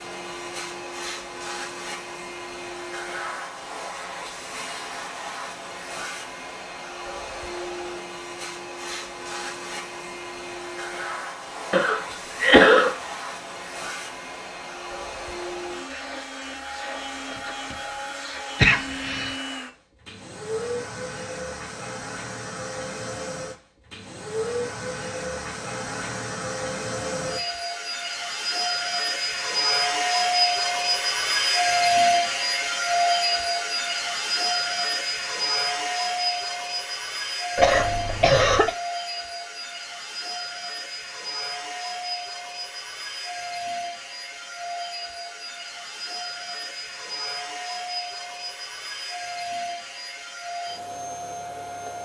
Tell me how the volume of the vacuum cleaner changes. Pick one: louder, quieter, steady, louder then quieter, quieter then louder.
louder then quieter.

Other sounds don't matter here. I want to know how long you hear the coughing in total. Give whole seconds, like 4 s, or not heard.
3 s.